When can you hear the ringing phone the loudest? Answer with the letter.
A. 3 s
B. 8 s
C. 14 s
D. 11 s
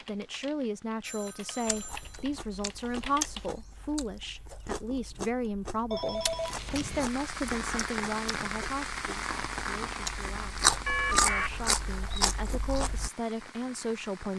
D.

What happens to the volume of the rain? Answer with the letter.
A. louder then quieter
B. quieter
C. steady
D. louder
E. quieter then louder
B.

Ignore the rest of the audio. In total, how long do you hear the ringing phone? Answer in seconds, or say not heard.
3 s.